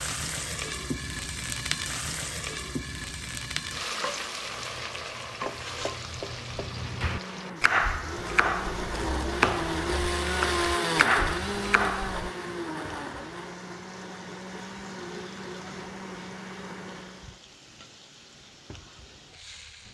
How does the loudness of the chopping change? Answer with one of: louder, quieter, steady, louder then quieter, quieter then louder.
louder.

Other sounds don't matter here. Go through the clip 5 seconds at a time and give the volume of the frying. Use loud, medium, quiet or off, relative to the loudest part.
loud, medium, quiet, quiet.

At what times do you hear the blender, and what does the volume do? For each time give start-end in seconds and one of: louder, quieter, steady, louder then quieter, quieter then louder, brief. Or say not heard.
6.7-17.4 louder then quieter.